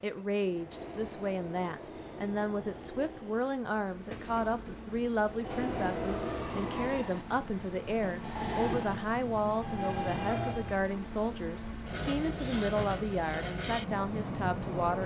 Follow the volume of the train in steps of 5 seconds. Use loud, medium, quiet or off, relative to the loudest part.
medium, loud, loud.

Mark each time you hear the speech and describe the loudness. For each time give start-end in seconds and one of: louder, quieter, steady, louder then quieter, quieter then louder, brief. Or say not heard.
0.0-15.0 steady.